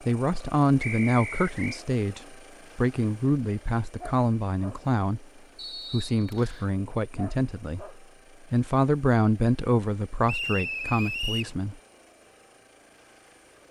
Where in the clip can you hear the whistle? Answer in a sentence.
You can hear the whistle from 0.8 to 1.8 s, from 5.5 to 6.7 s and from 10.2 to 11.6 s.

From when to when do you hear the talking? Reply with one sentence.
The talking can be heard from 0.0 to 5.2 s and from 5.9 to 11.8 s.